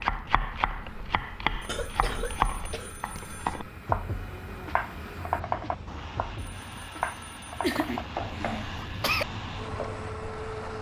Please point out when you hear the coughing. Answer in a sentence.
You can hear the coughing from 1.6 to 3.7 s and from 7.6 to 9.2 s.